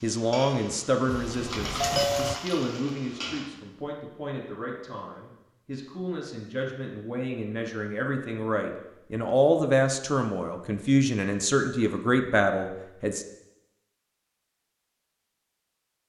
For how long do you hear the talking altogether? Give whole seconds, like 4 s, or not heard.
13 s.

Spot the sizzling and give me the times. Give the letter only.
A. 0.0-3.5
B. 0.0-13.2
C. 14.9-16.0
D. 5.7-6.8
A.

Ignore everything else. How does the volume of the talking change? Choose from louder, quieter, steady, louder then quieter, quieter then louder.
quieter then louder.